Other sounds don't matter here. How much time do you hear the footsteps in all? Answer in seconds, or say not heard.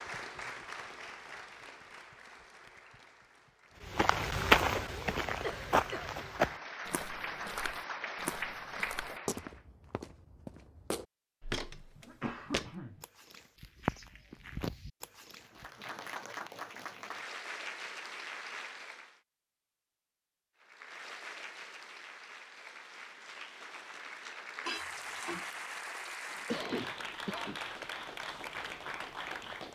12 s.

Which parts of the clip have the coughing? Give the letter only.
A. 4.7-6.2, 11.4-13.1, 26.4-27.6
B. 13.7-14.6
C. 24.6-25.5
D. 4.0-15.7
A.